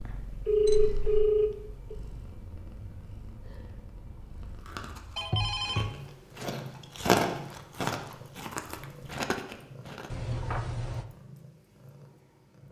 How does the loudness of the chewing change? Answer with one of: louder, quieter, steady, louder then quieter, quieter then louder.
louder then quieter.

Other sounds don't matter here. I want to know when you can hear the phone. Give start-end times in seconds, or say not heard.
0.1-1.9, 5.2-5.9, 10.1-11.1.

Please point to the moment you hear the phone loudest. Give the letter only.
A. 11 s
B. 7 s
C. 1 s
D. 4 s
C.